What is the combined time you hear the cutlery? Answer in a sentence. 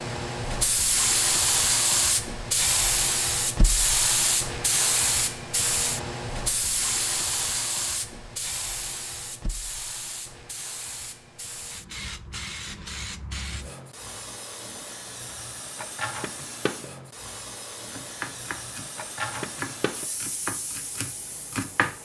The cutlery can't be heard in this clip.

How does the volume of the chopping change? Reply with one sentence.
The volume of the chopping goes down, then up.